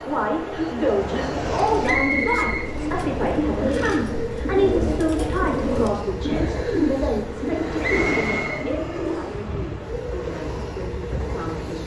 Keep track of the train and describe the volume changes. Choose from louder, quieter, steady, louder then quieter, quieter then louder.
steady.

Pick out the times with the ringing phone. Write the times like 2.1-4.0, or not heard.
not heard.